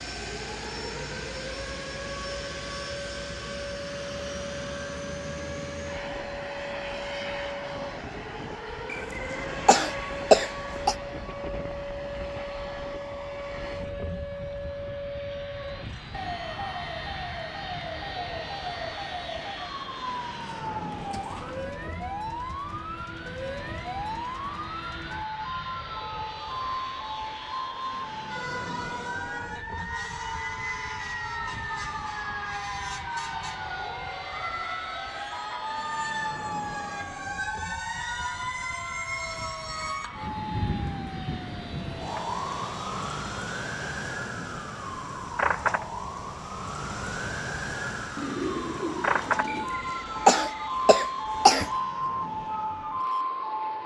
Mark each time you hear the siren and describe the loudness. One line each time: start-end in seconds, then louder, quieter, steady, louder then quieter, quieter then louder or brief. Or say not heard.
0.0-53.8 louder.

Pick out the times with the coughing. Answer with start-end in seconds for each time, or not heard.
8.9-10.9, 49.5-51.7.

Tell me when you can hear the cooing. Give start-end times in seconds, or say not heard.
48.1-49.7.